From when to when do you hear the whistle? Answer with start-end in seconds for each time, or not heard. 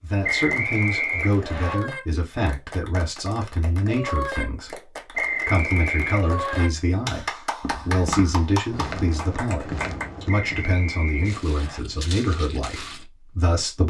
0.2-1.8, 5.1-6.7, 10.3-11.8.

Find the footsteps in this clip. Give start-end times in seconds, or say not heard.
7.6-13.1.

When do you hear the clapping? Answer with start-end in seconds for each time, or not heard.
0.3-10.1.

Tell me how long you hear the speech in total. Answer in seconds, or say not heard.
14 s.